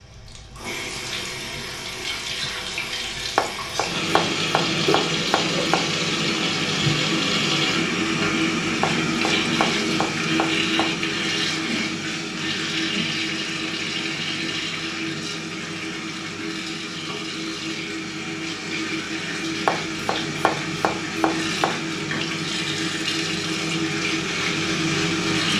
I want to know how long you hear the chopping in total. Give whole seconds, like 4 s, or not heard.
7 s.